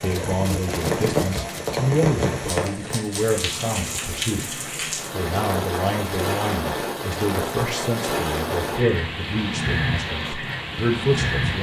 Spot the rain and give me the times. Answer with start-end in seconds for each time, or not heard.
0.0-11.5.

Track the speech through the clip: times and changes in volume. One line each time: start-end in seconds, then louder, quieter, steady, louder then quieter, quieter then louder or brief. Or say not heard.
0.0-11.5 steady.